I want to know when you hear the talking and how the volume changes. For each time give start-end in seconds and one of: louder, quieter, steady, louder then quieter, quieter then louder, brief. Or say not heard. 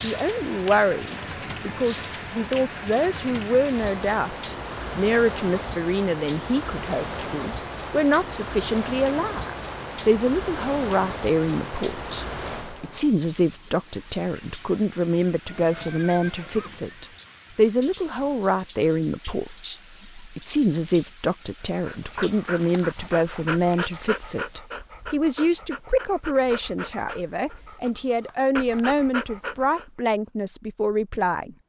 0.0-31.6 steady.